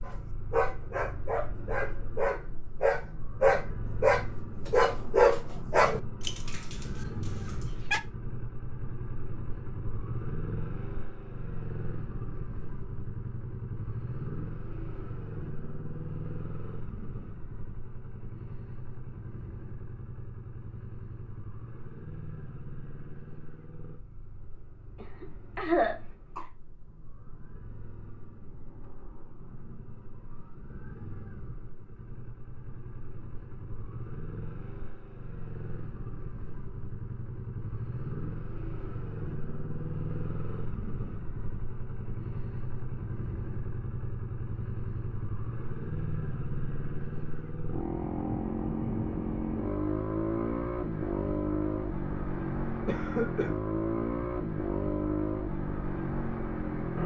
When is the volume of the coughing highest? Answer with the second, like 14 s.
26 s.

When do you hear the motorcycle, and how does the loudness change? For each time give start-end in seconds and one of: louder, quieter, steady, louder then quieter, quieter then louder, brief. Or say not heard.
0.0-57.0 quieter then louder.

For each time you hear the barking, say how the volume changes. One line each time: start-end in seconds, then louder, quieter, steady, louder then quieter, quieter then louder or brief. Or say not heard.
0.1-8.0 louder then quieter.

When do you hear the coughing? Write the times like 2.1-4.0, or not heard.
25.0-26.4, 52.9-53.5.